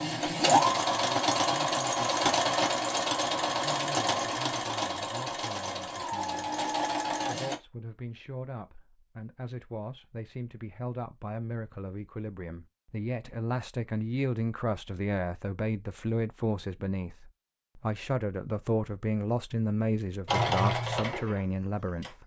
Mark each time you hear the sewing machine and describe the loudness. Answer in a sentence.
The sewing machine can be heard from 0.0 to 7.5 s, getting quieter; and briefly from 20.2 to 22.1 s.